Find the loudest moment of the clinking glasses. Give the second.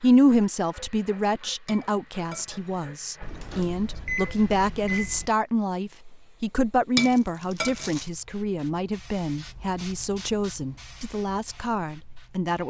7 s.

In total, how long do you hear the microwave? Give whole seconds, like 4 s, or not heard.
2 s.